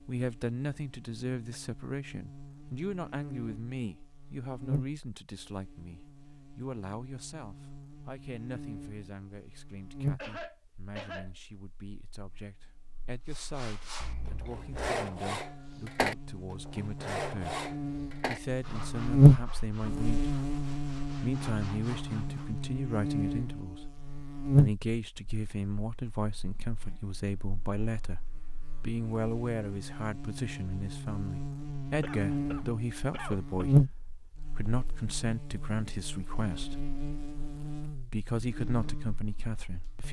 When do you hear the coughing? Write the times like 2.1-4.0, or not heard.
10.2-11.3, 14.0-14.9, 32.0-33.6.